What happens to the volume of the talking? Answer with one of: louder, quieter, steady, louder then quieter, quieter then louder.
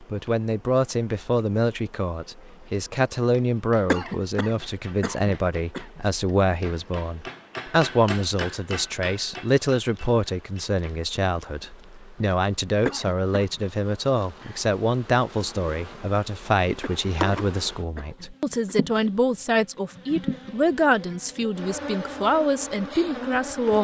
steady.